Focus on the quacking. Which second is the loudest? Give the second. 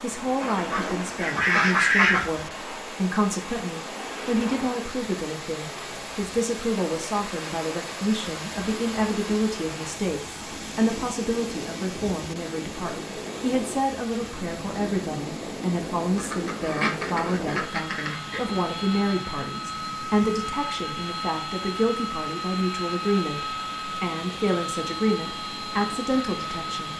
2 s.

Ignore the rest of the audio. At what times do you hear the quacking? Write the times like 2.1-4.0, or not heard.
0.4-2.2, 16.0-18.6.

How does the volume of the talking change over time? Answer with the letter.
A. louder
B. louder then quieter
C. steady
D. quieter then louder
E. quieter
C.